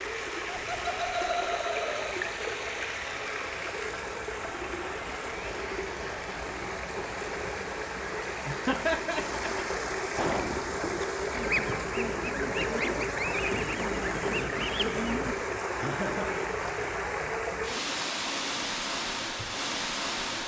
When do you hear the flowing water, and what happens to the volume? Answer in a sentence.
You can hear the flowing water from 0.0 to 20.4 s, at a steady volume.